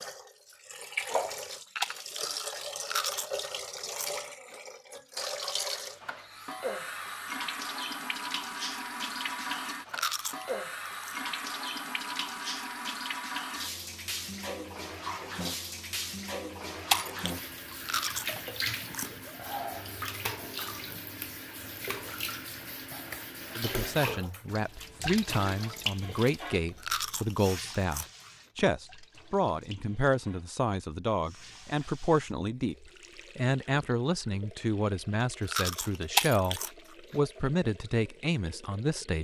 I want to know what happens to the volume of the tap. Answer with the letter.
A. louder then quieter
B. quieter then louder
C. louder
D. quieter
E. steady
D.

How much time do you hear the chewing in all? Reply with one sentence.
You can hear the chewing for 9 seconds altogether.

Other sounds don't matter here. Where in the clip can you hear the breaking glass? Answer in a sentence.
You can hear the breaking glass from 1.8 to 2.3 s, from 16.9 to 17.4 s and from 36.1 to 36.6 s.